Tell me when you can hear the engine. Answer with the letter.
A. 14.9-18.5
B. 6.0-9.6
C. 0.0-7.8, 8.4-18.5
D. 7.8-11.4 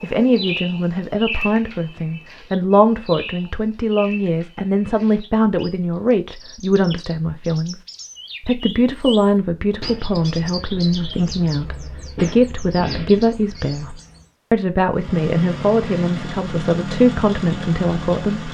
A.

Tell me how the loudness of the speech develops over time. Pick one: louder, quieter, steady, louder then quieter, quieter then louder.
steady.